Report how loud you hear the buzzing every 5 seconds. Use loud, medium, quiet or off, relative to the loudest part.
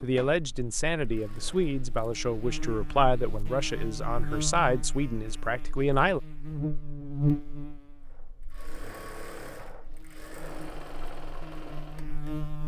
medium, loud, medium.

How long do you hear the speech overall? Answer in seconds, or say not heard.
6 s.